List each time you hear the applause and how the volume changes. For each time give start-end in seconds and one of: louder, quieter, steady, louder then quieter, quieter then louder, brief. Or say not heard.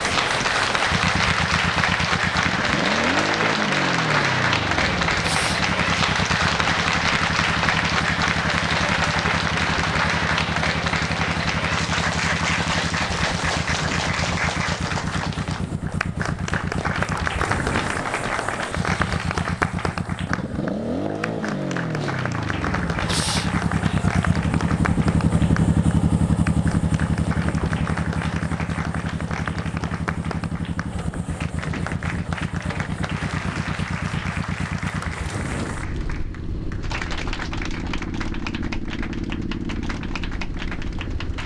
0.0-41.4 quieter.